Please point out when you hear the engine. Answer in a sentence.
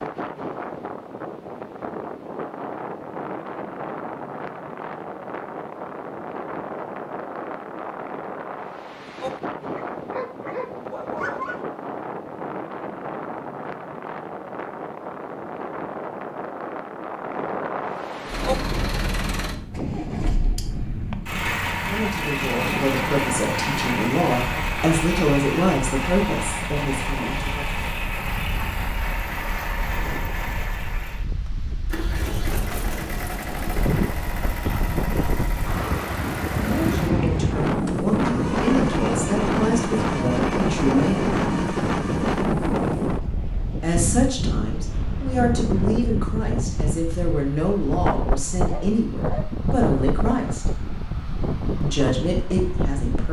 You can hear the engine from 18.2 to 42.5 s.